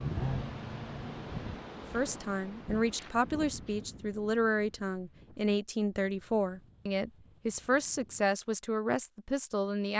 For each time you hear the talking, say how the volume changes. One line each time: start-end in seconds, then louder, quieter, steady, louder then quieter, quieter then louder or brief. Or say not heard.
1.9-9.9 steady.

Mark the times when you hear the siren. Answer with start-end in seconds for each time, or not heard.
not heard.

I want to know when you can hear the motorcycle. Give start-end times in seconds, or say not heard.
0.0-1.4.